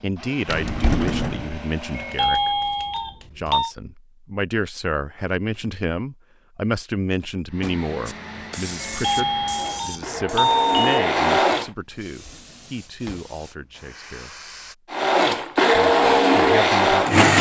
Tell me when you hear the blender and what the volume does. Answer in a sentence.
The blender can be heard briefly from 0.0 to 2.4 s; from 7.5 to 11.7 s, getting louder; and briefly from 14.9 to 17.3 s.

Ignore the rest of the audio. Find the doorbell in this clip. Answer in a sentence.
The doorbell can be heard from 1.9 to 3.7 s and from 8.8 to 11.1 s.